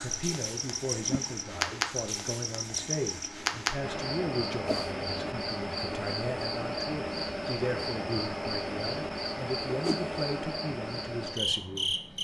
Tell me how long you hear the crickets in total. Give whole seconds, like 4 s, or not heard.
12 s.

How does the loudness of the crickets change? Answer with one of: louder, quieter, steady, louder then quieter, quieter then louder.
steady.